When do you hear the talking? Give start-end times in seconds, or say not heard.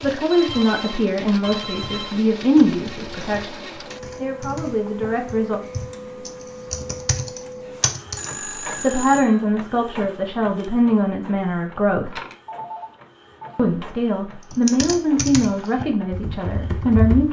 0.0-5.6, 8.8-12.2, 13.6-17.2.